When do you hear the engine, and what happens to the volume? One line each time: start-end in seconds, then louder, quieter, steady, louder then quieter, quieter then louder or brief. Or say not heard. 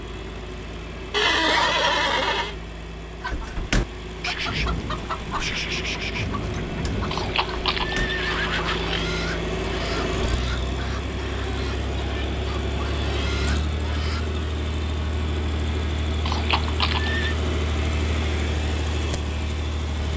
0.0-20.1 louder.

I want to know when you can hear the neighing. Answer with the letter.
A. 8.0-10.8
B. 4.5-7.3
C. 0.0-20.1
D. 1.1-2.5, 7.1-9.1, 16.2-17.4
D.